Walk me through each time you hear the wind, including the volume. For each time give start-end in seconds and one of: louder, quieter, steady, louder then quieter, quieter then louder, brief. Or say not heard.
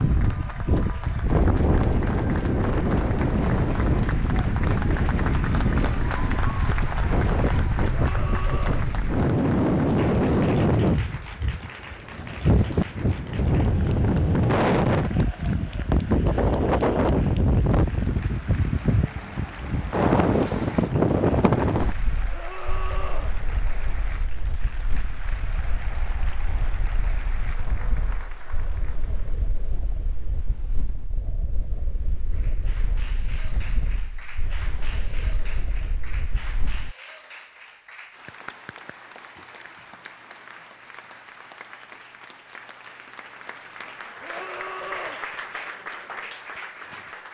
0.0-37.0 quieter.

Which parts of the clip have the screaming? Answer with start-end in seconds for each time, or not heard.
7.9-8.9, 22.3-23.4, 44.2-45.2.